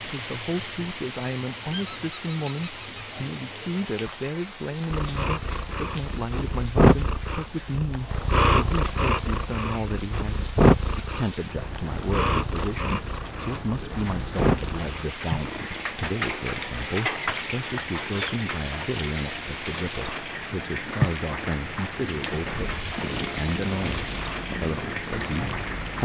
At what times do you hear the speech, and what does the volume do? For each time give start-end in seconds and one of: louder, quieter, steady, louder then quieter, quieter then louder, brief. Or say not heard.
0.0-26.0 steady.